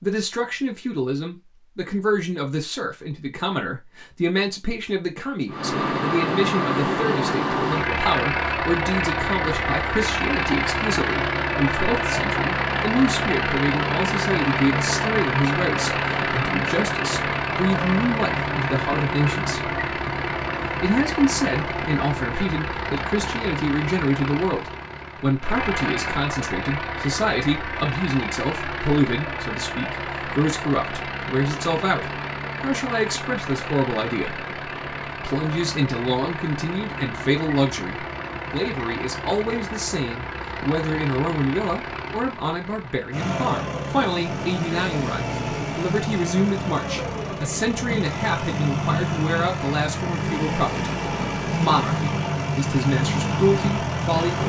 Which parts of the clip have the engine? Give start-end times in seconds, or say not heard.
5.5-54.4.